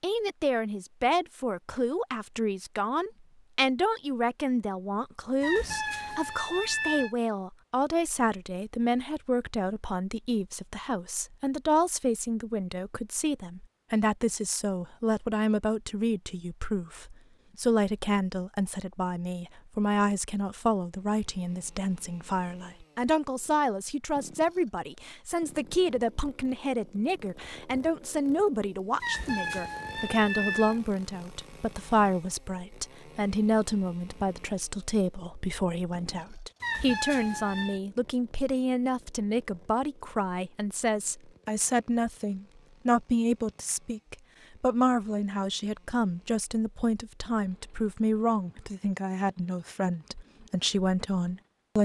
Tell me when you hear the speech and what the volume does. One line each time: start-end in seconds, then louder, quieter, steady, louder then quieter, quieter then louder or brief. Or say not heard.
0.0-51.7 steady.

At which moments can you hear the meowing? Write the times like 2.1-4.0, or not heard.
5.4-7.2, 29.0-30.8, 36.6-37.8.